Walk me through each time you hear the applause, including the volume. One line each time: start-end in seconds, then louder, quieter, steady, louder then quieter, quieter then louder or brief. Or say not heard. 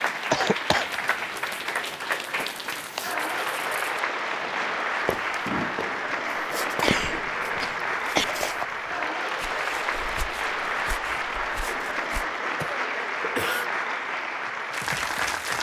0.0-15.5 steady.